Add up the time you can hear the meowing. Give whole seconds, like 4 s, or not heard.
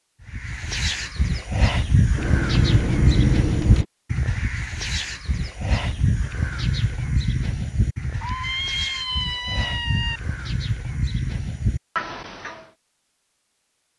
4 s.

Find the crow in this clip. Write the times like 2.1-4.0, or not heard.
0.2-12.7.